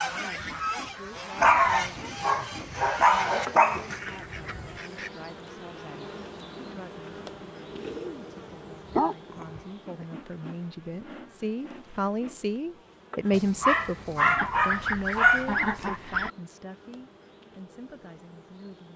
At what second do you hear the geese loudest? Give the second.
16 s.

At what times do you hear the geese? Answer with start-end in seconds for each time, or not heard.
0.0-5.1, 14.3-16.3.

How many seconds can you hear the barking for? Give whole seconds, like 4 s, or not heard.
6 s.